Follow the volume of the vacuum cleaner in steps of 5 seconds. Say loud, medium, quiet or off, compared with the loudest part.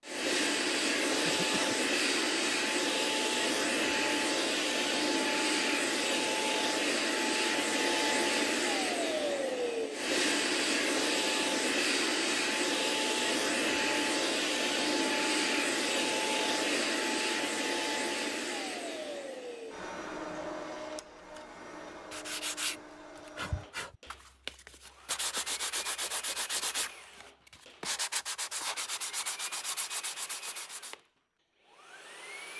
loud, loud, loud, loud, quiet, quiet, quiet.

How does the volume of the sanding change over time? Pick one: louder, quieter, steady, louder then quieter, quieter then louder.
steady.